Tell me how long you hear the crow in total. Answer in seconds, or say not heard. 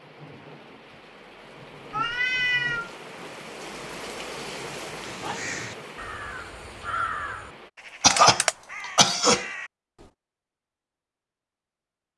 5 s.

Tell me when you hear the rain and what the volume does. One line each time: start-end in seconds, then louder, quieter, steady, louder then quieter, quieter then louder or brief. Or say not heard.
0.0-7.7 louder then quieter.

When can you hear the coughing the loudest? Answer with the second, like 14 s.
8 s.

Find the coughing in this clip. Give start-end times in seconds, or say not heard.
8.0-9.4.